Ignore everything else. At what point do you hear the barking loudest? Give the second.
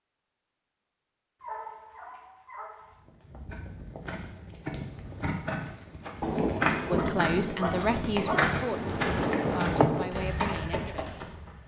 8 s.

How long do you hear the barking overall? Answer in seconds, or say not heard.
4 s.